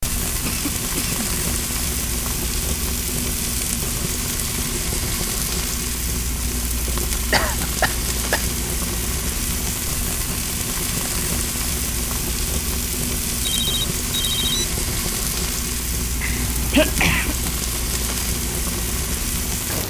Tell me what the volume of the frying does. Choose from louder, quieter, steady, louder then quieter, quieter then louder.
steady.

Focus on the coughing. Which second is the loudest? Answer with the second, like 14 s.
17 s.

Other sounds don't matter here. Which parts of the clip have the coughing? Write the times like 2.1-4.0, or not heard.
0.5-1.1, 7.3-8.4, 16.2-17.4.